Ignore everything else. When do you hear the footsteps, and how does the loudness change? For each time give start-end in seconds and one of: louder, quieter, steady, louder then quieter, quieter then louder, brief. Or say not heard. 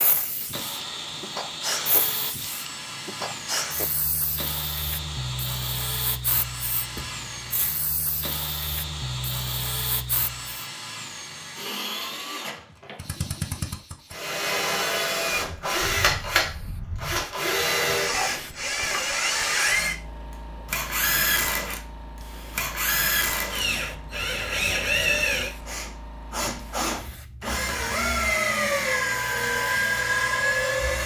not heard.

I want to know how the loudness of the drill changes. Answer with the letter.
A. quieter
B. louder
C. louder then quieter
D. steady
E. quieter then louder
B.